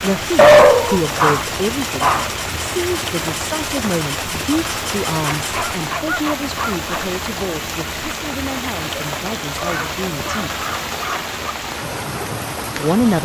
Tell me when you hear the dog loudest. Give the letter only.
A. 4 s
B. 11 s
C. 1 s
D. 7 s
C.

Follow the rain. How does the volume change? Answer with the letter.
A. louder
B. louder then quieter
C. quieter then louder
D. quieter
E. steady
E.